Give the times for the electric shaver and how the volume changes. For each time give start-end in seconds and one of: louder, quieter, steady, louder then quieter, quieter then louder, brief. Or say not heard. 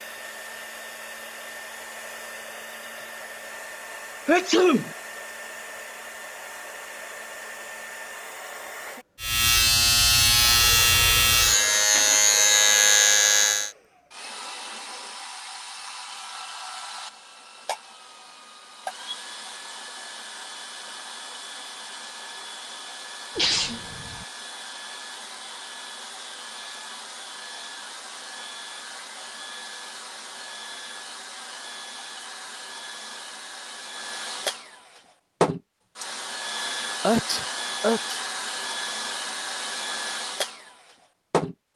9.2-13.8 steady.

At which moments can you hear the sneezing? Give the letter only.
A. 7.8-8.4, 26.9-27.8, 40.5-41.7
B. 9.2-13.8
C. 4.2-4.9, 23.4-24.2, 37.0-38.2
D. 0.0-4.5
C.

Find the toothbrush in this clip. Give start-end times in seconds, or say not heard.
not heard.